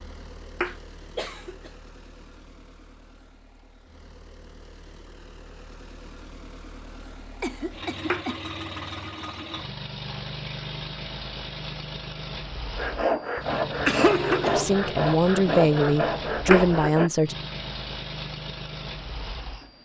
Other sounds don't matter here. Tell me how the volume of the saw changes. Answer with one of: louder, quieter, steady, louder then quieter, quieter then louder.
steady.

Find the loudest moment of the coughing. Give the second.
14 s.